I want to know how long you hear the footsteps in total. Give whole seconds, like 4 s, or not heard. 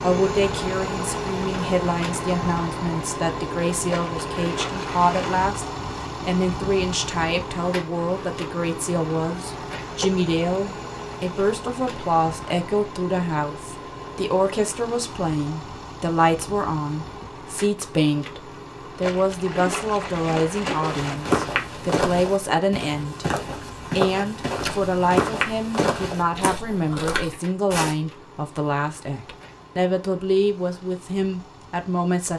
7 s.